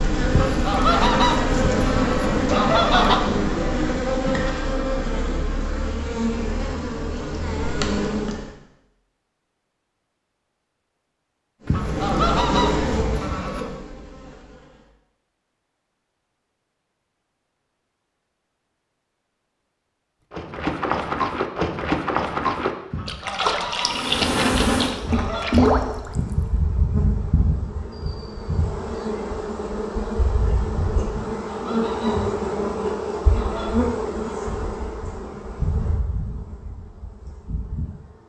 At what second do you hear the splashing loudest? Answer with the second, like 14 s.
26 s.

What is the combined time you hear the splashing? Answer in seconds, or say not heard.
6 s.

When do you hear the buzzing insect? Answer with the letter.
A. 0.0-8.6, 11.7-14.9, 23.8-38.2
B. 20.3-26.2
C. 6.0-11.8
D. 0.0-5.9
A.